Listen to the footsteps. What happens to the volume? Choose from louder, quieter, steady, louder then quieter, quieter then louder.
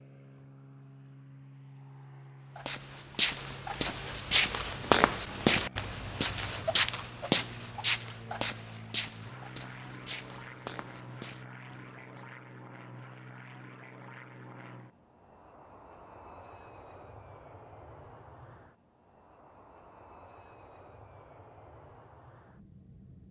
quieter.